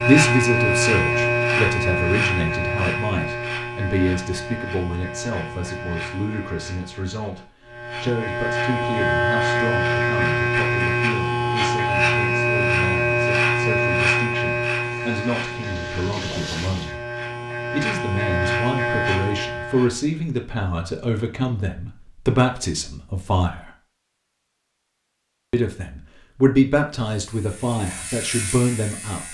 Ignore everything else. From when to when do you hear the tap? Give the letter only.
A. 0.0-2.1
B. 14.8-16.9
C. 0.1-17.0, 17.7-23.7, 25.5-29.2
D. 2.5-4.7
B.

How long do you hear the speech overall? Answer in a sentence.
The speech can be heard for 27 seconds in total.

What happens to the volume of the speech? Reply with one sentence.
The loudness of the speech goes down, then up.